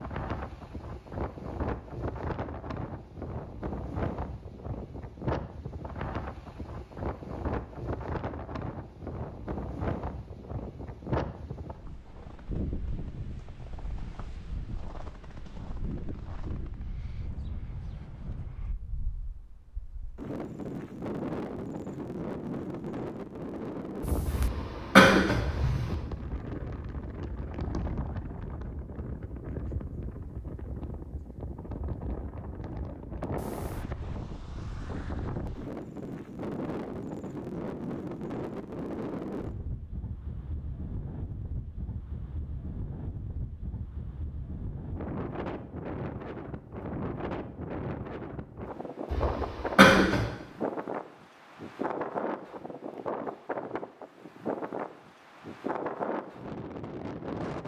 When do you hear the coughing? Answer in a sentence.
The coughing can be heard from 24.2 to 25.9 s and from 49.1 to 50.2 s.